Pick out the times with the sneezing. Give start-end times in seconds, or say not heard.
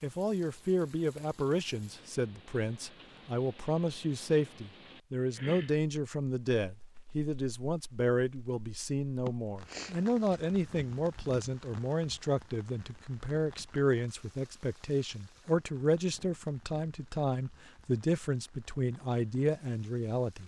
9.2-10.4.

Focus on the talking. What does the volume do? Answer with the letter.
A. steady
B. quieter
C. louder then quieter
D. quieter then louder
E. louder
A.